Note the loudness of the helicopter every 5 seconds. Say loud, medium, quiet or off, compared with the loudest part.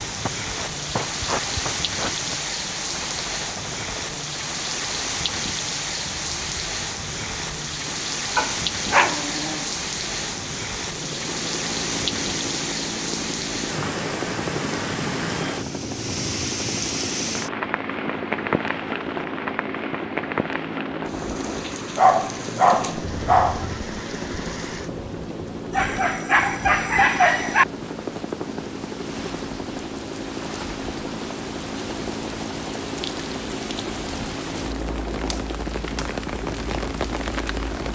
medium, medium, loud, loud, loud, loud, loud, loud.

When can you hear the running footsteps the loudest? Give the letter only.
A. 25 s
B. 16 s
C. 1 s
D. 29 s
C.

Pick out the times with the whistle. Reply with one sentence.
You can't hear the whistle here.